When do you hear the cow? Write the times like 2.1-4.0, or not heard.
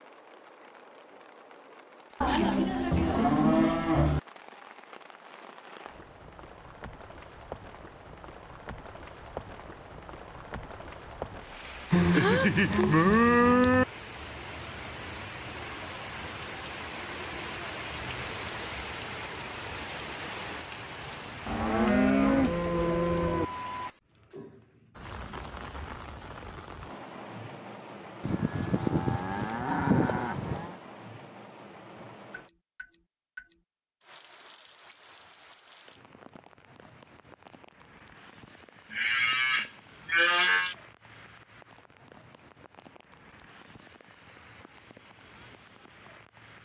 2.2-4.2, 11.9-13.8, 21.4-23.4, 28.2-30.8, 38.9-40.8.